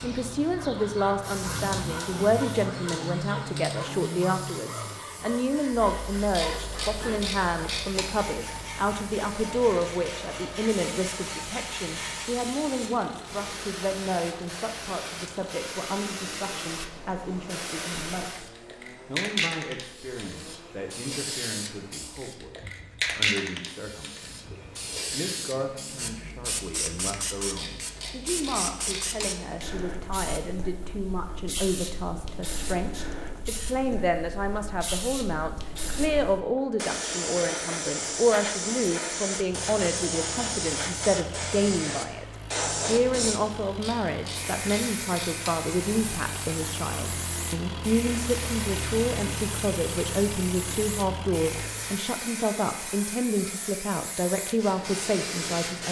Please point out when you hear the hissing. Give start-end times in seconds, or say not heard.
0.0-55.8.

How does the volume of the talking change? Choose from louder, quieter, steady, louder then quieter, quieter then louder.
quieter then louder.